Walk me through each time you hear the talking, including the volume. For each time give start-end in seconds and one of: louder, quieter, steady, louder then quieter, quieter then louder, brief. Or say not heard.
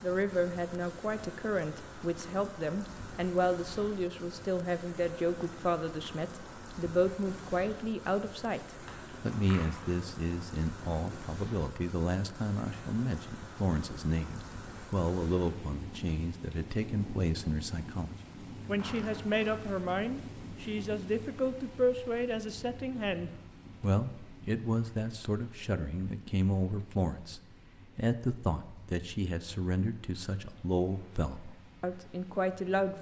0.0-32.9 steady.